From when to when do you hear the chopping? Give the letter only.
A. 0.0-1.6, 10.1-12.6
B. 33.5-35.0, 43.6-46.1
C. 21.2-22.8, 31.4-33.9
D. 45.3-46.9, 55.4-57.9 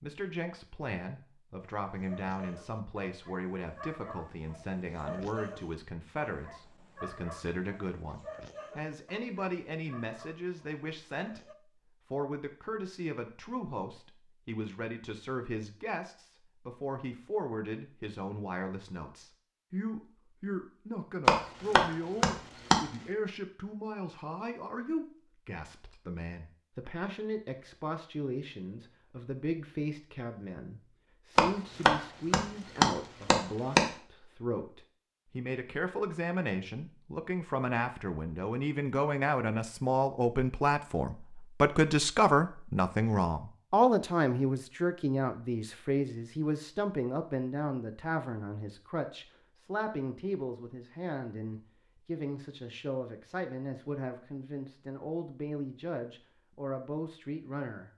C.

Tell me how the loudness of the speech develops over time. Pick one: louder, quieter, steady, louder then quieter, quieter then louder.
louder then quieter.